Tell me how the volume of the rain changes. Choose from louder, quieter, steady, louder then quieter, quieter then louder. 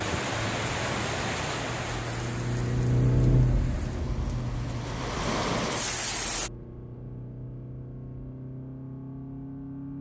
quieter then louder.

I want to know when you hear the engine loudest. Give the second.
3 s.